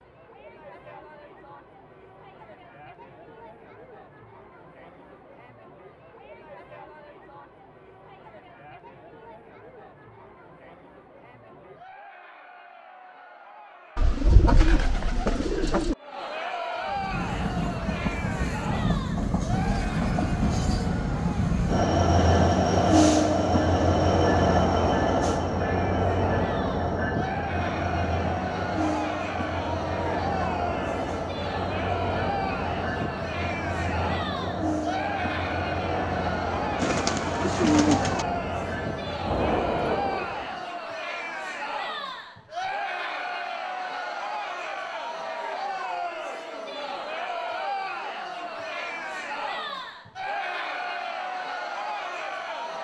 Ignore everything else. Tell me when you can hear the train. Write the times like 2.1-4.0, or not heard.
16.8-40.7.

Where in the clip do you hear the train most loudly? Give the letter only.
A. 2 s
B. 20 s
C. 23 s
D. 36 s
C.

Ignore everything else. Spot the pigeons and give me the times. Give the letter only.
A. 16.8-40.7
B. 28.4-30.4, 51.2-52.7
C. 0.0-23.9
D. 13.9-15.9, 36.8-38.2
D.